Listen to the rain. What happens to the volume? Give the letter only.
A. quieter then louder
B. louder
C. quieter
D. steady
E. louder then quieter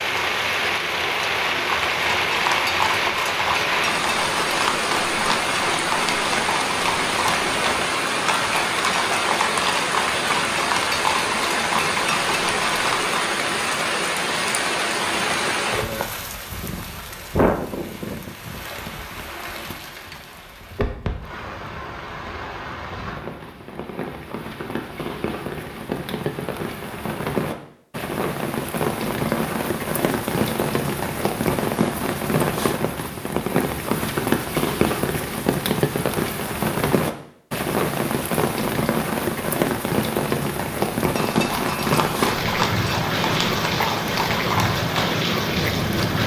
A.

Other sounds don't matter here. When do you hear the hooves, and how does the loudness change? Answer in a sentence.
You can hear the hooves from 1.5 to 13.2 s, at a steady volume; and from 41.0 to 46.2 s, at a steady volume.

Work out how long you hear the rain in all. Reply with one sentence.
The rain can be heard for 46 seconds in total.